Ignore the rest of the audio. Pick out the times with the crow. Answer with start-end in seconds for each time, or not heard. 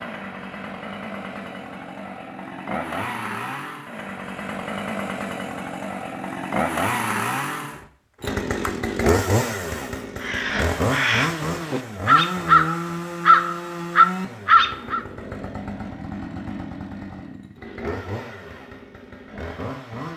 10.2-15.0.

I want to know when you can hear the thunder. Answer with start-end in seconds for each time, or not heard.
not heard.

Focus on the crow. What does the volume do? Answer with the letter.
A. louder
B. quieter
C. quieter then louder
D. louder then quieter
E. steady
A.